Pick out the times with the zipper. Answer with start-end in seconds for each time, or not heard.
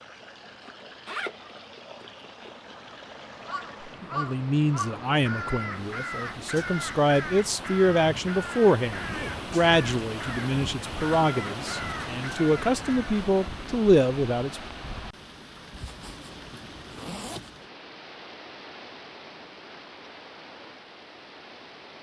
0.6-2.5, 8.9-9.5, 15.7-17.5.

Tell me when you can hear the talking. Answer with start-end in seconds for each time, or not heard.
4.0-14.6.